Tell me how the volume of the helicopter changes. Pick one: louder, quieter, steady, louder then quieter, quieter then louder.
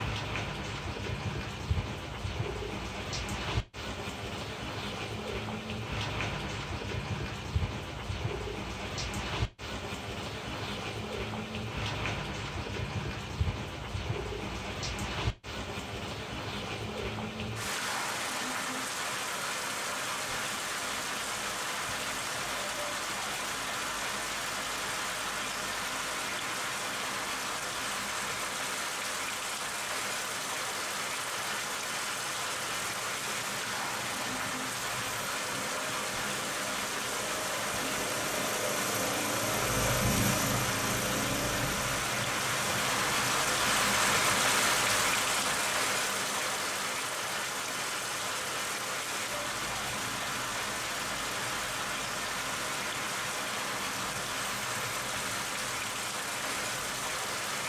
louder then quieter.